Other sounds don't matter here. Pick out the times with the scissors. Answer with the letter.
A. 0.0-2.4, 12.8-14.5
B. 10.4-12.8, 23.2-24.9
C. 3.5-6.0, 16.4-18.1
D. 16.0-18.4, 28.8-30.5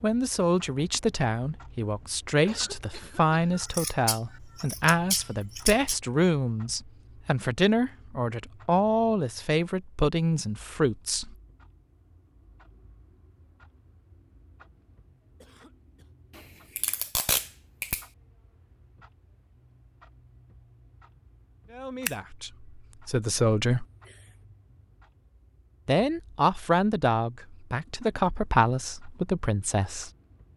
C.